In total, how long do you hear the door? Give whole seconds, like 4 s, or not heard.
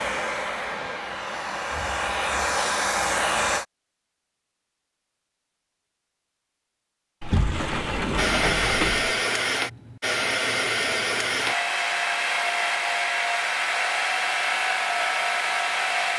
2 s.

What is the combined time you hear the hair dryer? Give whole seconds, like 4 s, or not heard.
12 s.